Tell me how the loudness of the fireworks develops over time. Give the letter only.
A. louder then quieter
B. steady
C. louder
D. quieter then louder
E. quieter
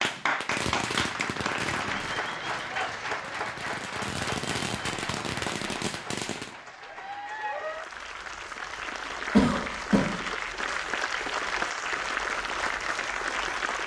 D.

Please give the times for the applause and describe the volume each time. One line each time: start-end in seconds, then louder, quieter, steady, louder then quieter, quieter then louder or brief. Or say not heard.
0.0-13.8 quieter then louder.